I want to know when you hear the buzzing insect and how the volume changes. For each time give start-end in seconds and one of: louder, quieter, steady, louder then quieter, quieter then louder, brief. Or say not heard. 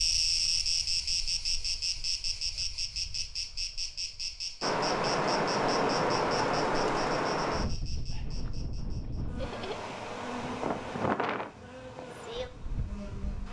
0.0-13.4 quieter.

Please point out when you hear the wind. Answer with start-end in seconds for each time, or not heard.
4.6-13.4.